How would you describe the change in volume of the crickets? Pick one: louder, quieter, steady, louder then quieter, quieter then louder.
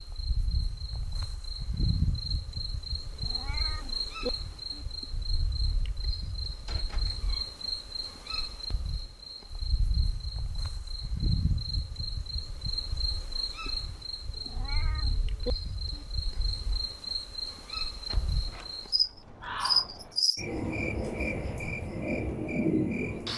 louder.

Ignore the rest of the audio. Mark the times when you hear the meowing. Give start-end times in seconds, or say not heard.
3.1-4.8, 14.3-16.1.